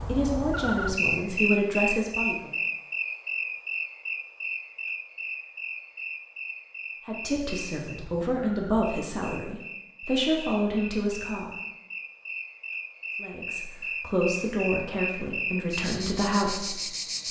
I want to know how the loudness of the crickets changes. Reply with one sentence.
The loudness of the crickets goes down, then up.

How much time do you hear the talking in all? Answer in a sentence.
You can hear the talking for 11 seconds altogether.